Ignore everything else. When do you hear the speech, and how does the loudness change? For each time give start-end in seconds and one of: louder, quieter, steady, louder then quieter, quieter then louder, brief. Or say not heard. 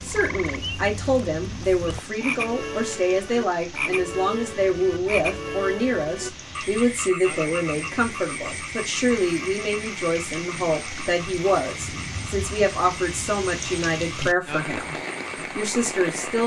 0.0-16.4 steady.